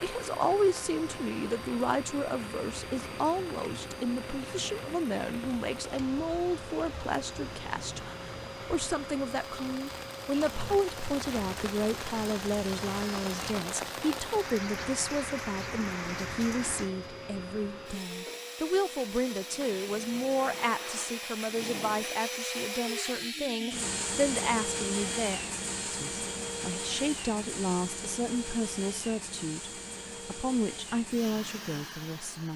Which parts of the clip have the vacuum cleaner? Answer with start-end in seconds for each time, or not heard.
0.0-32.5.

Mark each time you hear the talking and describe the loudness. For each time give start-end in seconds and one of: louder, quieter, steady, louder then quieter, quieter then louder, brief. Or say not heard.
0.0-32.5 steady.